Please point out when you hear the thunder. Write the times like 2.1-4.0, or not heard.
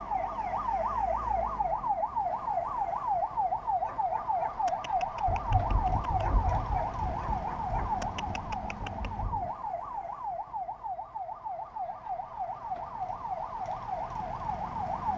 5.2-9.5.